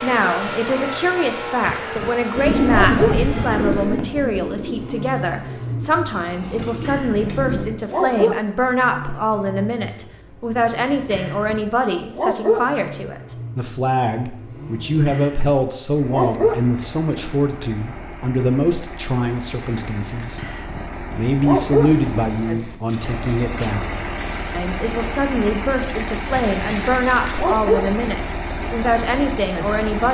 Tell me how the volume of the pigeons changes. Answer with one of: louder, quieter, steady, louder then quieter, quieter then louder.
quieter then louder.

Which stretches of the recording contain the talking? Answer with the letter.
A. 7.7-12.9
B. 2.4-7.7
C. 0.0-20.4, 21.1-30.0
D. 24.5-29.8
C.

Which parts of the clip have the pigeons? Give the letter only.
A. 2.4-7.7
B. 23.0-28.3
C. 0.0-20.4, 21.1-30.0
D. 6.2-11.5
A.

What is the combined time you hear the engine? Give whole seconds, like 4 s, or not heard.
30 s.